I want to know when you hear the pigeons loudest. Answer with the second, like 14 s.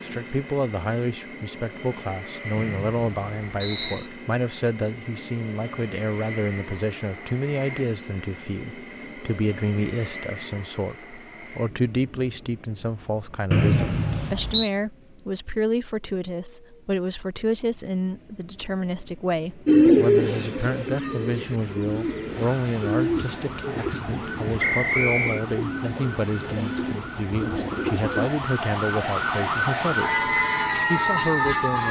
20 s.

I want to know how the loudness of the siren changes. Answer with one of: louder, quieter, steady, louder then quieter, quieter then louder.
louder.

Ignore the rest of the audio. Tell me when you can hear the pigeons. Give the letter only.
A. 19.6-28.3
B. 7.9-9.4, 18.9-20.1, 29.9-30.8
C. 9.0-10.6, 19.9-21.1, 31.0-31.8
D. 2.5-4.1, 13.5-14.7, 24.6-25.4
A.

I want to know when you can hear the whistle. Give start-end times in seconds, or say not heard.
2.5-4.1, 13.5-14.7, 24.6-25.4.